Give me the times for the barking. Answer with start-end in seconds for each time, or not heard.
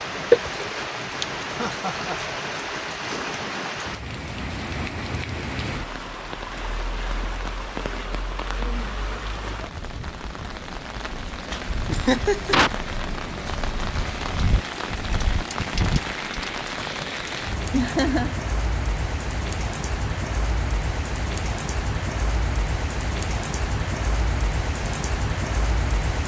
not heard.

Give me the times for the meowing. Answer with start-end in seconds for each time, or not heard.
0.3-0.8.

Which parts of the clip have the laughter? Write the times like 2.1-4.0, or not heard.
1.5-2.4, 11.8-12.7, 17.7-18.4.